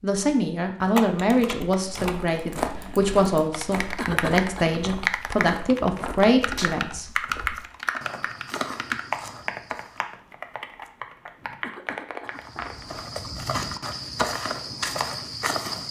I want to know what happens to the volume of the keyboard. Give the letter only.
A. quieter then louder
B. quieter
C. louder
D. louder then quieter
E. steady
D.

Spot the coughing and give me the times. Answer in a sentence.
The coughing can be heard from 4.0 to 4.7 s and from 11.6 to 12.7 s.